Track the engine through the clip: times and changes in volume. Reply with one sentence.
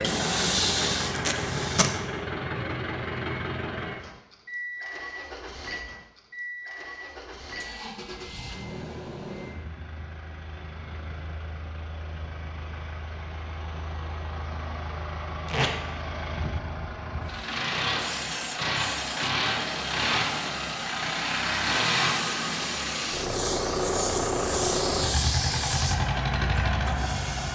You can hear the engine from 0.0 to 27.4 s, getting quieter then louder.